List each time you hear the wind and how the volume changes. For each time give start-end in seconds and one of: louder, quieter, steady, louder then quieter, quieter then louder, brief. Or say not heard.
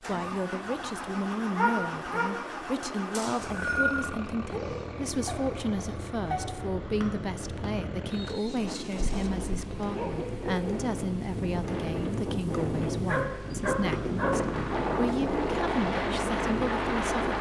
5.2-17.3 louder.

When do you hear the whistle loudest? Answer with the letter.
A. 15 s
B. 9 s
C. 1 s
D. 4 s
D.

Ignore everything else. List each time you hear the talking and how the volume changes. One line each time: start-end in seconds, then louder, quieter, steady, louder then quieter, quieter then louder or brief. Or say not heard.
0.0-17.3 steady.